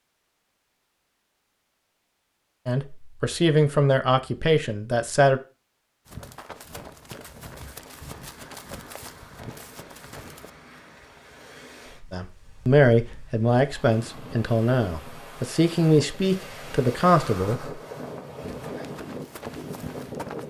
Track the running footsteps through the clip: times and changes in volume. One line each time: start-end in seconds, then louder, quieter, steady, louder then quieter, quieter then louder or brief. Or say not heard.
6.0-10.5 steady
18.4-20.4 brief.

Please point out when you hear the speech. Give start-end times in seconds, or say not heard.
2.6-5.4, 12.1-17.6.